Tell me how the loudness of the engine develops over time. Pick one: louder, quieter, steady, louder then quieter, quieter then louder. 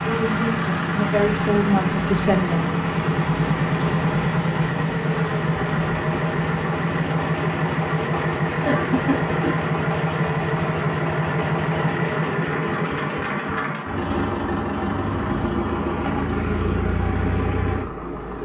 steady.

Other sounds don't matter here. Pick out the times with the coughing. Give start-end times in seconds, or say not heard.
8.7-9.6.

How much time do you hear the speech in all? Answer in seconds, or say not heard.
3 s.